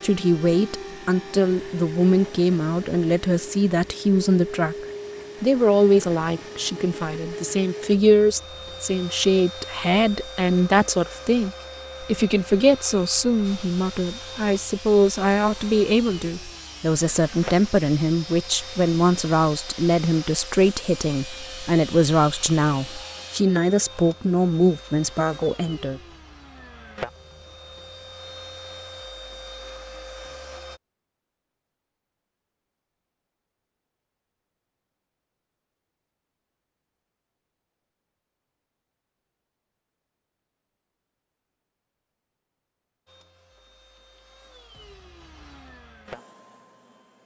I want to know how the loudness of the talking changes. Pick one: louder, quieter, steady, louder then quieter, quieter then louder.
steady.